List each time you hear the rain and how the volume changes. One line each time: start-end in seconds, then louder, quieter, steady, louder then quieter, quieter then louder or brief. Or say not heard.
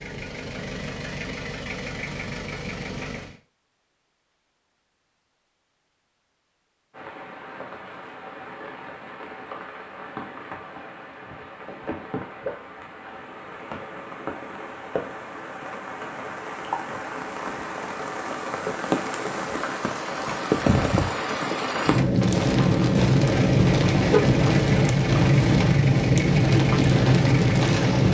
6.9-28.0 louder.